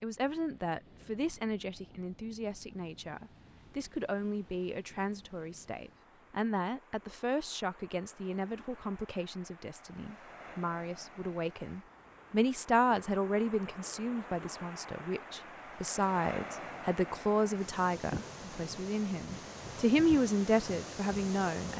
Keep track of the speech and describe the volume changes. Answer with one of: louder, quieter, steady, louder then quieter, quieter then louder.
louder.